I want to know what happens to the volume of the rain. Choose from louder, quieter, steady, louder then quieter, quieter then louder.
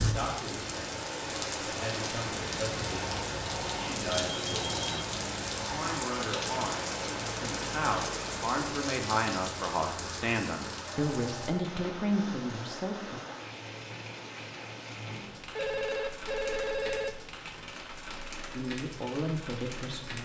quieter.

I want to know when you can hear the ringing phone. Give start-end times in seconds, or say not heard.
2.9-5.0, 10.8-11.8, 15.6-17.2.